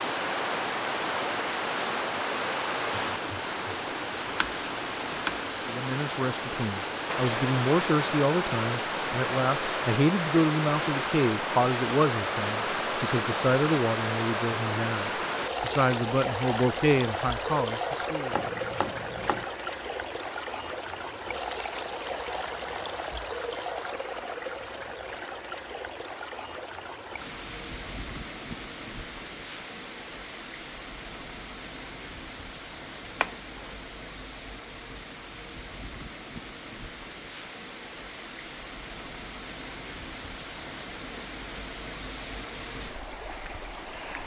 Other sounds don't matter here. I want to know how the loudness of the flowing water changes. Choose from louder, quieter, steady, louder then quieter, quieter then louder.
quieter.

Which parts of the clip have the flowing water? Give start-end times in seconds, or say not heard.
0.0-44.2.